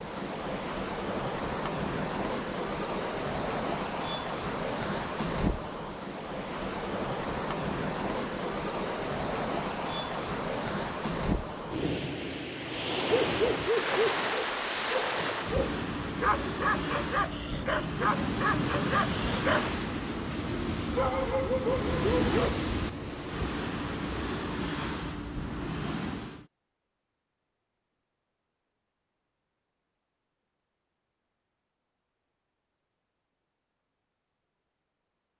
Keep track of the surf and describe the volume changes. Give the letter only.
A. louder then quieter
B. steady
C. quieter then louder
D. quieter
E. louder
B.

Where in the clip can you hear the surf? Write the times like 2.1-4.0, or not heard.
0.0-26.4.